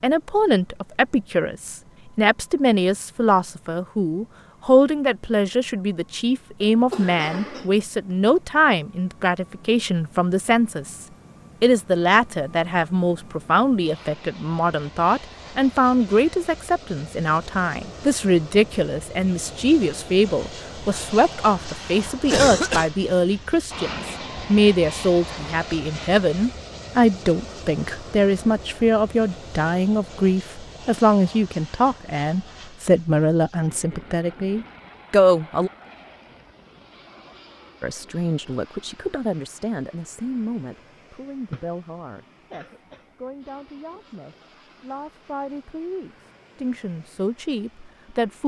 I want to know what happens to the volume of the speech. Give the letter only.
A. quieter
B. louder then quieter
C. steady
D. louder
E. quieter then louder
A.